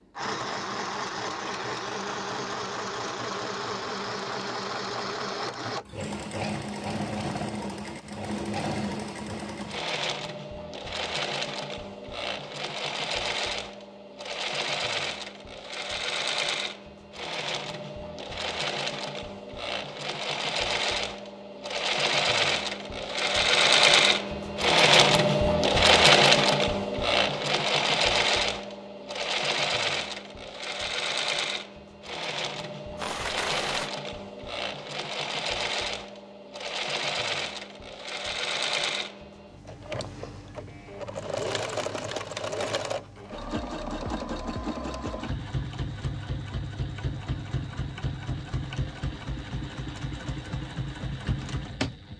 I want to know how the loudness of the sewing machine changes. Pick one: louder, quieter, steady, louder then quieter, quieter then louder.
louder then quieter.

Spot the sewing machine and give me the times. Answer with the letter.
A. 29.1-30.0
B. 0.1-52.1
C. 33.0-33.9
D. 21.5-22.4
B.